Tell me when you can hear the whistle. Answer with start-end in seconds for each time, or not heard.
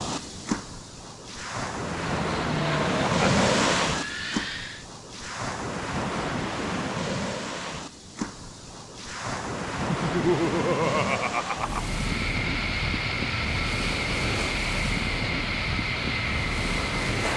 not heard.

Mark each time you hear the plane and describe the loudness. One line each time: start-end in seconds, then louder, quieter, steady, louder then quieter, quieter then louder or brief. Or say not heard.
1.9-4.8 brief
11.7-17.3 steady.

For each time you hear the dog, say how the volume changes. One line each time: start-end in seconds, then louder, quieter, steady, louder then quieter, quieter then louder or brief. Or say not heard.
not heard.